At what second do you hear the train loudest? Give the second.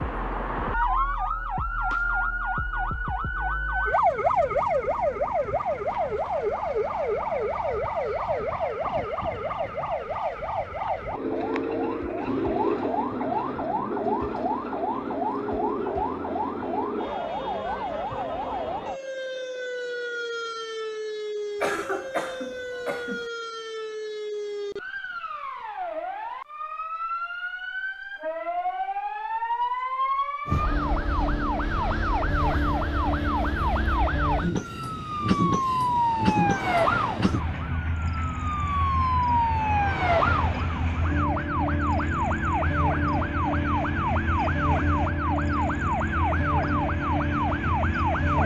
36 s.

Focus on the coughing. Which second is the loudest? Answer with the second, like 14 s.
22 s.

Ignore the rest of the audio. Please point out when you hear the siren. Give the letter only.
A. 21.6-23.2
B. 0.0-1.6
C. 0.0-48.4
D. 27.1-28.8
C.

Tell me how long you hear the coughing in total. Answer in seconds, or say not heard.
2 s.